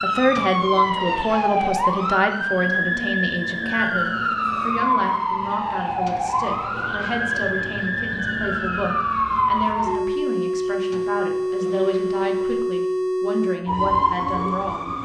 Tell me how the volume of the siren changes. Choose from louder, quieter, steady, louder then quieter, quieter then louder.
steady.